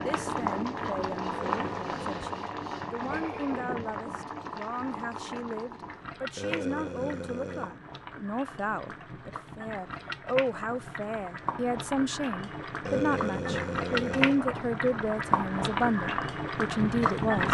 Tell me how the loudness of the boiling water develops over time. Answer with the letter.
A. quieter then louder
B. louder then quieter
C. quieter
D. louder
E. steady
A.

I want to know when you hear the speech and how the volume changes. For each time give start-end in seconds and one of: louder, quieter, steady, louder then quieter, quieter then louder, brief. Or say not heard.
0.0-17.4 louder.